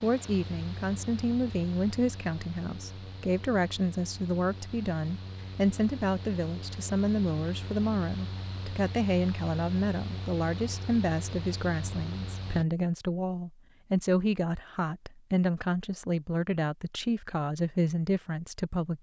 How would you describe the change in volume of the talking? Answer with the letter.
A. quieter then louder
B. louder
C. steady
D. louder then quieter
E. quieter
C.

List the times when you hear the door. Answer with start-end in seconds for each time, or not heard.
not heard.